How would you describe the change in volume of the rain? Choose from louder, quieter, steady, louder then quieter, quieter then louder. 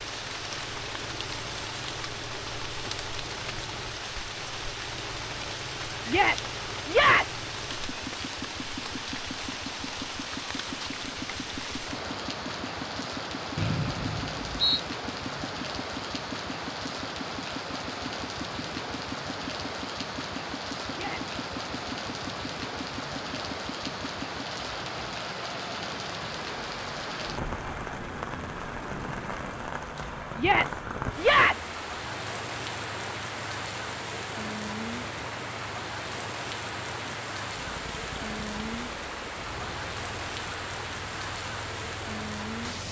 steady.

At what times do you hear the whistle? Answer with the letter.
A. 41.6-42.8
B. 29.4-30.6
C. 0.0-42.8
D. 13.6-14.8
D.